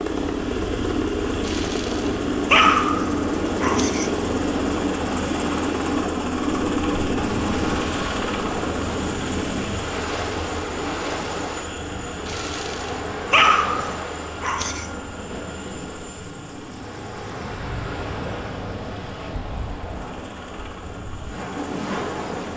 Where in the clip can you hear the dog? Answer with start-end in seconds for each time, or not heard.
1.4-4.1, 12.2-14.8.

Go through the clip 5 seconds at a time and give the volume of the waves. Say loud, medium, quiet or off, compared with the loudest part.
loud, loud, loud, medium, loud.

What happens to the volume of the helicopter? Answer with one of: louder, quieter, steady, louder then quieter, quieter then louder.
quieter.